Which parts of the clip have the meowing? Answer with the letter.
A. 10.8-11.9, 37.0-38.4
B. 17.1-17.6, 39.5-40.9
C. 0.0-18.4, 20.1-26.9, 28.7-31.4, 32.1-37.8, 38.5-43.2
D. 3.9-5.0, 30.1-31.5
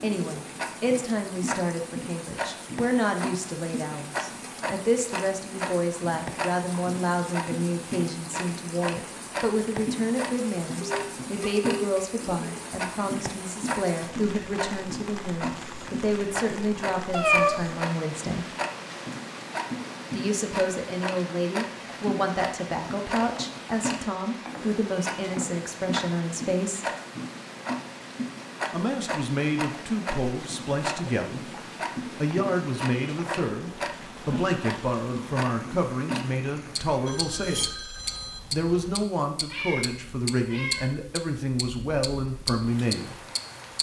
B.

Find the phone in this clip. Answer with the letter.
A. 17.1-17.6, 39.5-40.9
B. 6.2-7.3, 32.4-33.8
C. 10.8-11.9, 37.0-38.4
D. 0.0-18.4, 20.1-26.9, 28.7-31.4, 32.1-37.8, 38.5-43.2
C.